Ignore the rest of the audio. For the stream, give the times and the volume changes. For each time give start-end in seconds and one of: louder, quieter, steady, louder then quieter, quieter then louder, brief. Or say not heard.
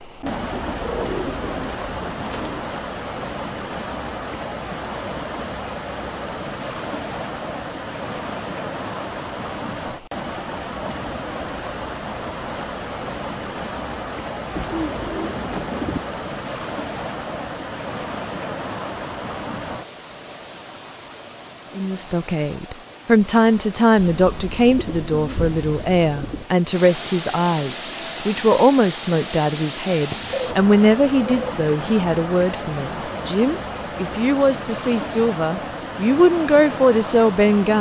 0.0-37.7 steady.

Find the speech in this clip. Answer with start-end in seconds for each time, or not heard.
21.8-37.7.